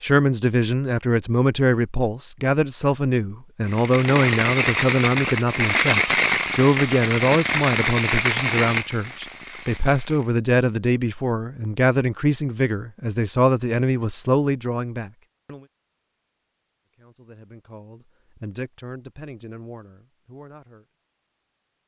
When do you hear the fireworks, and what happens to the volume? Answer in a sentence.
You can hear the fireworks from 3.6 to 10.3 s, getting quieter.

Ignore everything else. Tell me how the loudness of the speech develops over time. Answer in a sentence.
The loudness of the speech goes down.